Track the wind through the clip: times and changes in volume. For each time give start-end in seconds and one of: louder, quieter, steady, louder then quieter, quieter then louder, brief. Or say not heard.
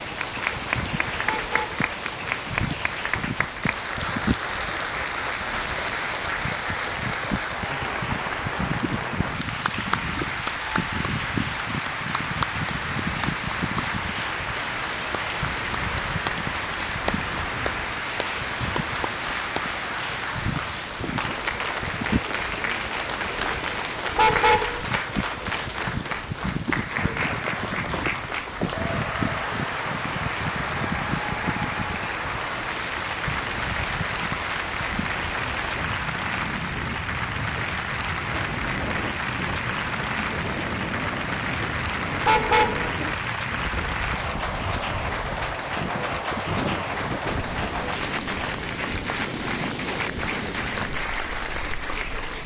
0.0-52.4 steady.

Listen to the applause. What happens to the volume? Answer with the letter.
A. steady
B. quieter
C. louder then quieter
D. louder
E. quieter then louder
A.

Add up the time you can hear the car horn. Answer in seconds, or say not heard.
2 s.